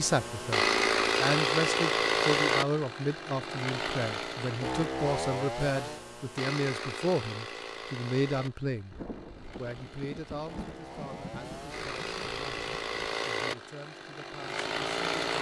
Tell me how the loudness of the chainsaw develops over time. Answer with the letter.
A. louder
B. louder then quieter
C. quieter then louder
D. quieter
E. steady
C.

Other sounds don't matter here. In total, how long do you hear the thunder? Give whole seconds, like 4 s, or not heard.
4 s.